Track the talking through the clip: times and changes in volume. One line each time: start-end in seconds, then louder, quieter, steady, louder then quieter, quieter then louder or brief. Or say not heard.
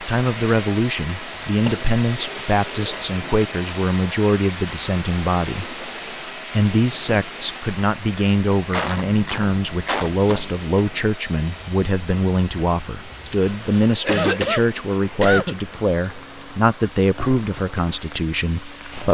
0.0-5.8 steady
6.5-19.0 steady.